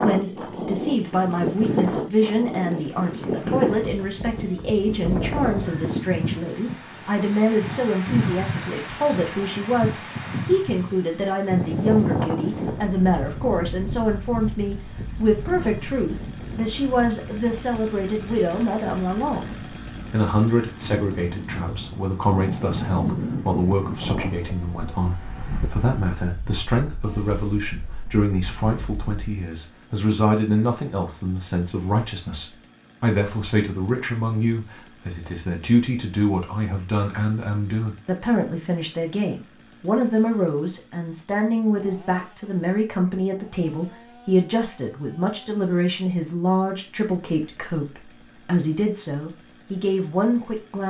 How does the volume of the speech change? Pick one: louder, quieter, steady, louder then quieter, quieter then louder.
steady.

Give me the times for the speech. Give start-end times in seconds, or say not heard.
0.0-50.8.